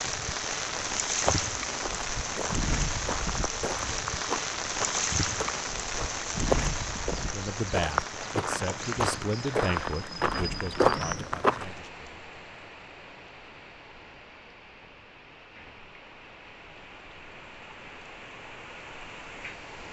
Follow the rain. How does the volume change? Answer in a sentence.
The volume of the rain goes down.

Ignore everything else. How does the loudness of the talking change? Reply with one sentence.
The loudness of the talking goes down.